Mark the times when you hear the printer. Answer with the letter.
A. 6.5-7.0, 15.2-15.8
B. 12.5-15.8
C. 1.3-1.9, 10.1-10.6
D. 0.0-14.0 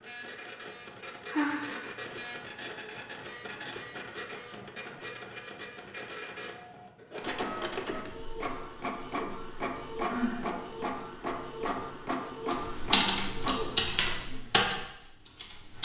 D.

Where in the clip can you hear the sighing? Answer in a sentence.
You can hear the sighing from 1.3 to 1.9 s and from 10.1 to 10.6 s.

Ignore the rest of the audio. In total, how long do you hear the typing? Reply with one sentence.
The typing can be heard for 3 seconds in total.